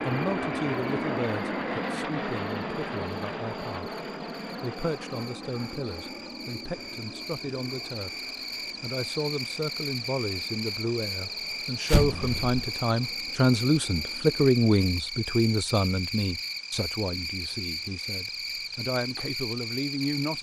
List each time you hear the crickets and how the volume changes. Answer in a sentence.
The crickets can be heard from 0.0 to 20.3 s, getting louder.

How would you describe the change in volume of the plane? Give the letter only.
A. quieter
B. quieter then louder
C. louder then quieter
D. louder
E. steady
A.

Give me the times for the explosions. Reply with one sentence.
You can hear the explosions from 11.8 to 12.6 s.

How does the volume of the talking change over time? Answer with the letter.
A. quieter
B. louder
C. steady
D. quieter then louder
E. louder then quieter
E.